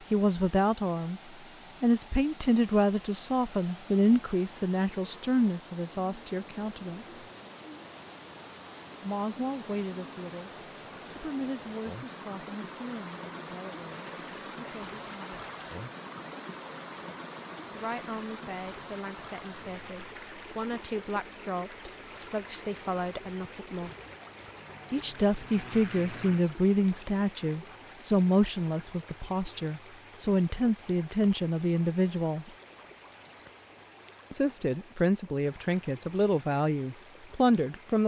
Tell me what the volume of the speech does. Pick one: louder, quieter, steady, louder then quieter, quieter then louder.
quieter then louder.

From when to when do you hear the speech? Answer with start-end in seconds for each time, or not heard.
0.1-7.2, 9.0-15.4, 17.7-23.9, 24.9-32.5, 34.3-38.0.